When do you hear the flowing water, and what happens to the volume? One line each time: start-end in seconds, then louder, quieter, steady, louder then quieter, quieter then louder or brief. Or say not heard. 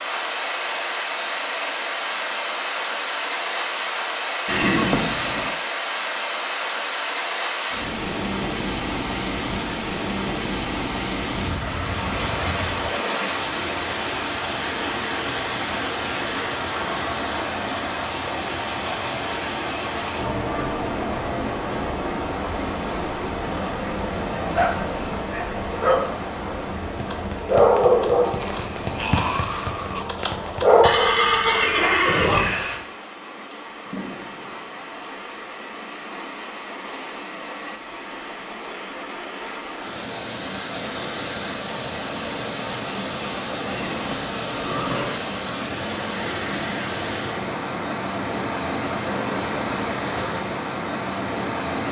0.0-51.8 quieter then louder.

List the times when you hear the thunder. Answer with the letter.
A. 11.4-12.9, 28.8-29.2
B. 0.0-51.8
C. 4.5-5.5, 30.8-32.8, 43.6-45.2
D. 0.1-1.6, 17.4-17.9
A.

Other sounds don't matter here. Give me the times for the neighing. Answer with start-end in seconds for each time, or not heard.
4.5-5.5, 30.8-32.8, 43.6-45.2.